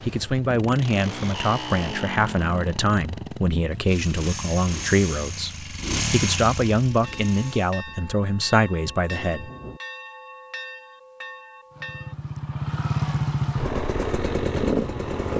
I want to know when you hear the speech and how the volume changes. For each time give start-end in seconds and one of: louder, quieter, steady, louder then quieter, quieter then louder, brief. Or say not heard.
0.0-9.5 steady.